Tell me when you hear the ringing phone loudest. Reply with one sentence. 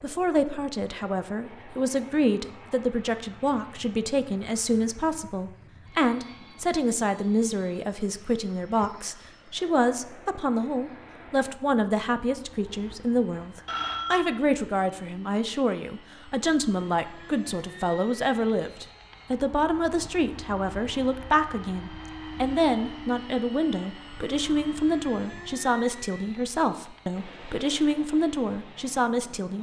The volume of the ringing phone peaks at 14 seconds.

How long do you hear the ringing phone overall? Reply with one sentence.
The ringing phone can be heard for 2 seconds in total.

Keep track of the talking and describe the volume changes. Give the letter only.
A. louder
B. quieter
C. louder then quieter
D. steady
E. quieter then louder
D.